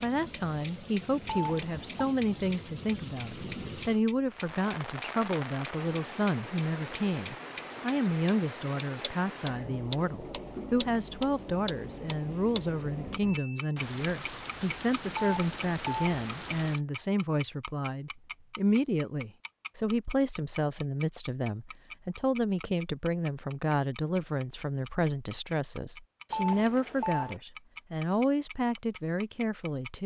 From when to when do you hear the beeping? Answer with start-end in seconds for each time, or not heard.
1.2-2.0, 15.1-16.1, 26.3-27.4.